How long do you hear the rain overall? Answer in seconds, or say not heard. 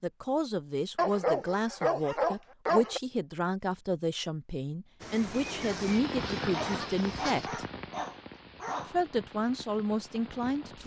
6 s.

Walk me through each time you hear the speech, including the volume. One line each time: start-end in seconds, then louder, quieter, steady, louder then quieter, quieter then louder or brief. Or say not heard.
0.0-7.6 steady
8.8-10.8 brief.